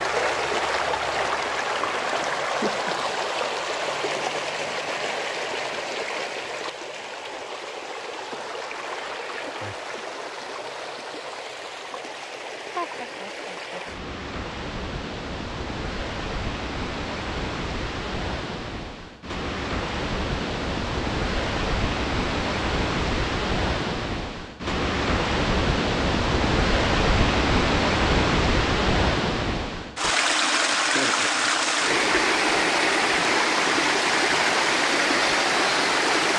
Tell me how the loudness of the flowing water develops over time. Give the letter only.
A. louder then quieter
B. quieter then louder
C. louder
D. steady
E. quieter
B.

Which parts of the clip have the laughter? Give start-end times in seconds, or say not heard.
2.2-2.9, 12.8-13.8, 30.9-31.6.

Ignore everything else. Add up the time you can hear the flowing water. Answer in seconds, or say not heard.
36 s.